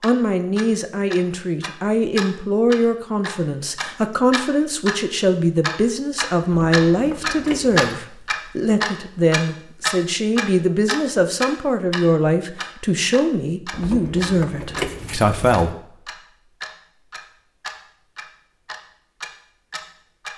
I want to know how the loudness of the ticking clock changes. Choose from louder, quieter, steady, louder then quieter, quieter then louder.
louder then quieter.